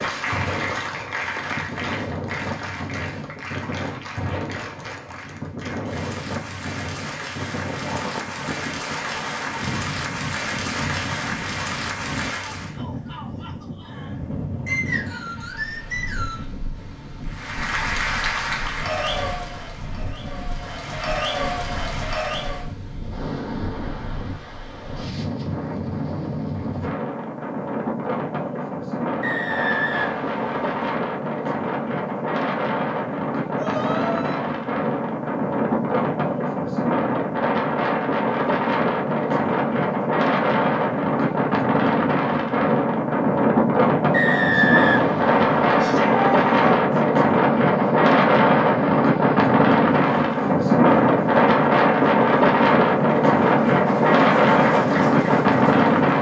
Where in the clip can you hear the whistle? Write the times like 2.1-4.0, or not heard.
14.7-16.4, 29.2-30.9, 44.1-45.6.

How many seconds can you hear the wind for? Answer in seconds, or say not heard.
56 s.